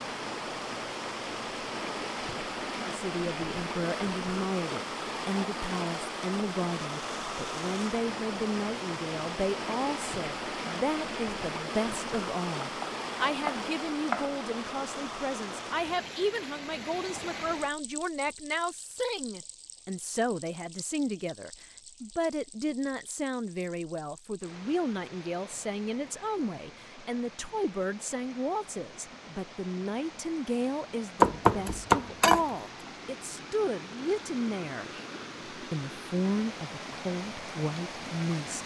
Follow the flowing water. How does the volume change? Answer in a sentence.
The loudness of the flowing water goes down, then up.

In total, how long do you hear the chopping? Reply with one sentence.
You can hear the chopping for 3 seconds altogether.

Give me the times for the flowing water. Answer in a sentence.
The flowing water can be heard from 0.0 to 38.6 s.